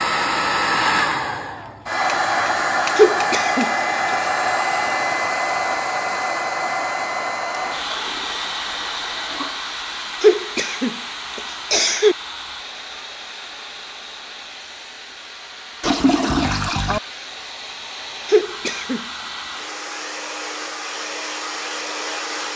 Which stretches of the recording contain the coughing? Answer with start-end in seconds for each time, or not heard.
3.0-4.2, 10.2-12.2, 18.2-19.1.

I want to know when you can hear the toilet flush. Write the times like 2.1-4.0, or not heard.
7.6-9.7, 15.8-17.0.